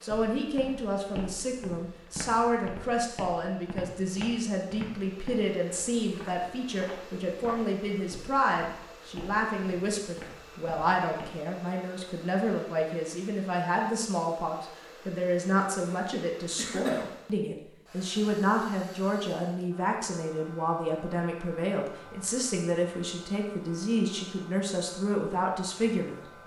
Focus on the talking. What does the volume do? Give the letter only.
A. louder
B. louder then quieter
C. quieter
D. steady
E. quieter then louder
D.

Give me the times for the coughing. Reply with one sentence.
The coughing can be heard from 16.1 to 17.1 s.